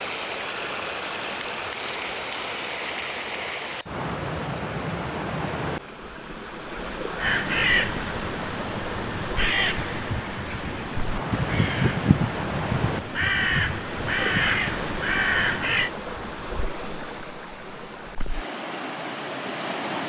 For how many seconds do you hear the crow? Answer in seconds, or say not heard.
9 s.